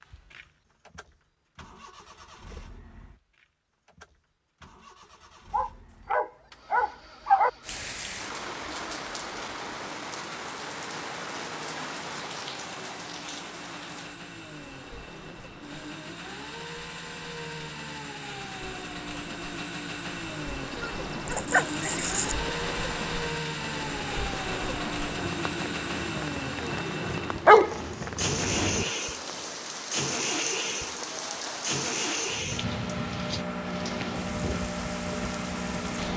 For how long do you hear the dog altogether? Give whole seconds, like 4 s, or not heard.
5 s.